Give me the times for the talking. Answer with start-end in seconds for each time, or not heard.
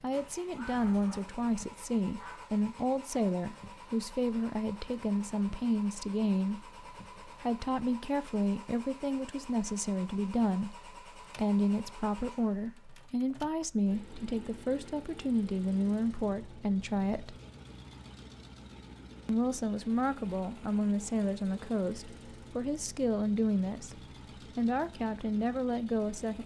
0.0-17.4, 19.2-26.4.